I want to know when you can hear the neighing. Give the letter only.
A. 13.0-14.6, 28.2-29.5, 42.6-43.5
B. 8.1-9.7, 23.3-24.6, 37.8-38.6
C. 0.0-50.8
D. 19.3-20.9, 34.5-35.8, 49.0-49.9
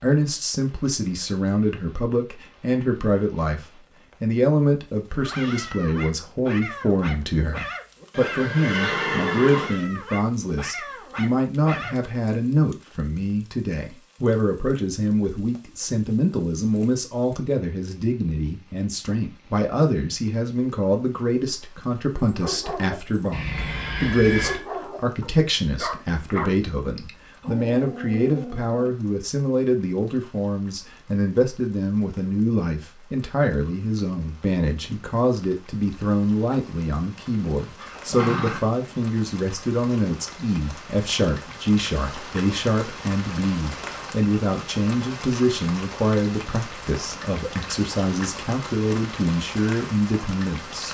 B.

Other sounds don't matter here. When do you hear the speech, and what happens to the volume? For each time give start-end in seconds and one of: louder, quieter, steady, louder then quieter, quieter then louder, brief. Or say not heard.
0.0-50.8 steady.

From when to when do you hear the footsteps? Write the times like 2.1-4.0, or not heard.
not heard.